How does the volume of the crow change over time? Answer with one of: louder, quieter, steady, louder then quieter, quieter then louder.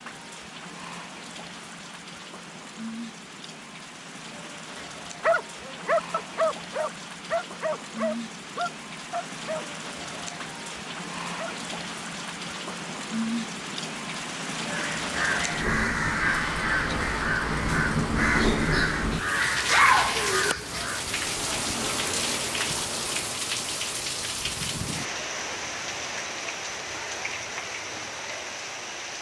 steady.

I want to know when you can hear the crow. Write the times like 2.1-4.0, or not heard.
14.7-21.1.